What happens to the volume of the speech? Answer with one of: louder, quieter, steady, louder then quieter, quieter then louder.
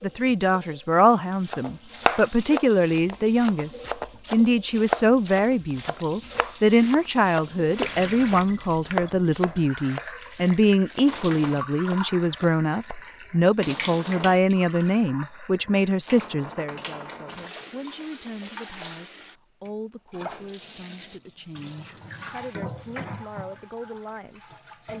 quieter.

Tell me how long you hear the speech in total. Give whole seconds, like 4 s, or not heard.
25 s.